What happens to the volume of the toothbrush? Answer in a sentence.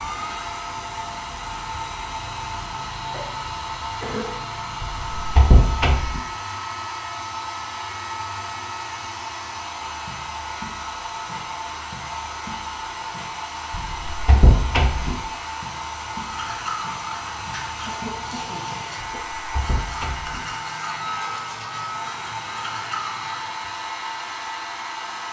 The volume of the toothbrush goes down, then up.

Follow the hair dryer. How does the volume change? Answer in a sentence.
The loudness of the hair dryer stays about the same.